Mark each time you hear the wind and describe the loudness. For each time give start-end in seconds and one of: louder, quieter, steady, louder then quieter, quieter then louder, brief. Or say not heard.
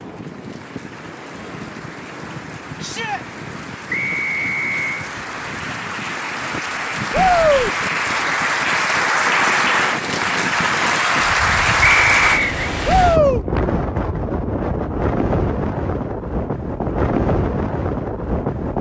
0.0-18.7 louder.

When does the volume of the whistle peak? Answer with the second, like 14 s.
12 s.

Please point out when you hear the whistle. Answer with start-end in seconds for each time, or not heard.
3.9-4.8, 11.8-12.7.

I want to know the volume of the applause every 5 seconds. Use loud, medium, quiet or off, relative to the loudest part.
quiet, loud, loud, off.